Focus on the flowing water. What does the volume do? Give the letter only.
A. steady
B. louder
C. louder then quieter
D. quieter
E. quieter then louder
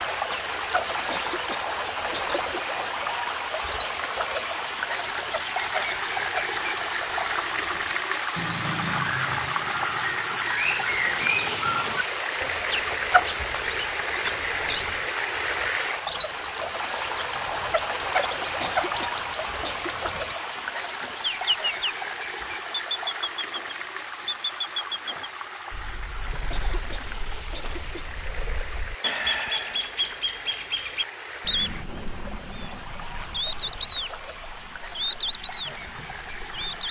D.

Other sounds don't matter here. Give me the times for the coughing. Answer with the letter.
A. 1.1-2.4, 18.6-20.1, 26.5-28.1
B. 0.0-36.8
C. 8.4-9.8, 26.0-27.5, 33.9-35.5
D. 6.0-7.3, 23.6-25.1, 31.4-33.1
A.